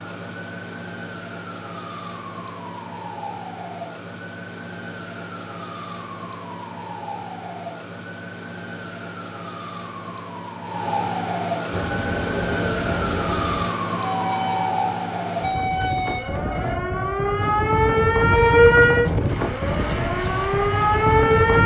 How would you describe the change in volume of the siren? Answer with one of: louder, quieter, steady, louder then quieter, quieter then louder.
louder.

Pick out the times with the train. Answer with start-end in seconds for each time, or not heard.
11.7-21.6.